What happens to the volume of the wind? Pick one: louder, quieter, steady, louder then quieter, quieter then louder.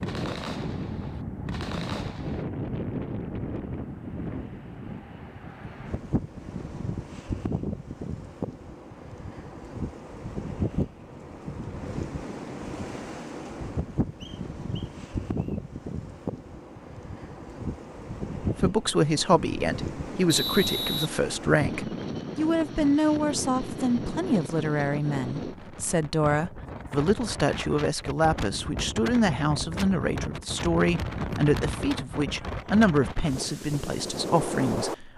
steady.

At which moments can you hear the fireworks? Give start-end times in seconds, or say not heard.
0.0-2.5.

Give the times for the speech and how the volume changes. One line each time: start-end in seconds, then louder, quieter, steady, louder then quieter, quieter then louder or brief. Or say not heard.
18.4-35.1 steady.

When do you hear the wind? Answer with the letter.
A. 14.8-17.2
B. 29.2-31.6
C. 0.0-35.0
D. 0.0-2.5
C.